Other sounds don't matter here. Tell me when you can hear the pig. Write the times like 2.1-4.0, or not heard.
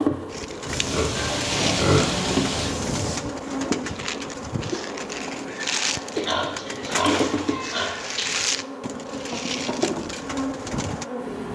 0.7-3.2, 6.2-8.4.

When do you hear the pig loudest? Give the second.
2 s.